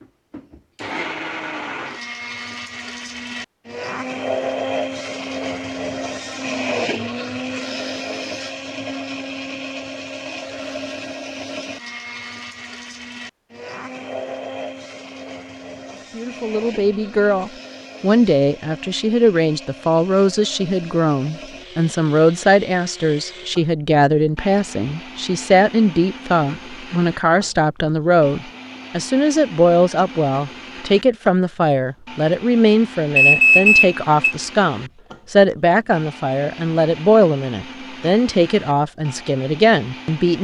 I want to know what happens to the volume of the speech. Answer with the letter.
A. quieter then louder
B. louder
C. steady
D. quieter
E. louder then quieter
C.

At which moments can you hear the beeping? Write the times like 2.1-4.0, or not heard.
33.1-34.4.